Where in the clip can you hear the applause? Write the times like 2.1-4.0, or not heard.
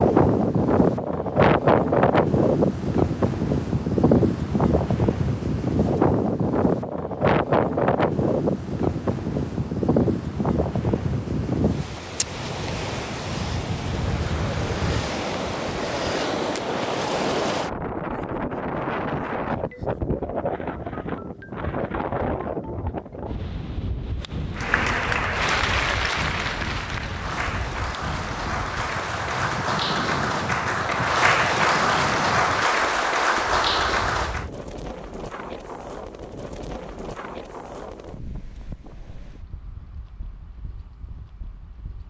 24.6-34.5.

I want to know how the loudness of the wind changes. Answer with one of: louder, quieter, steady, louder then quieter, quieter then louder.
quieter.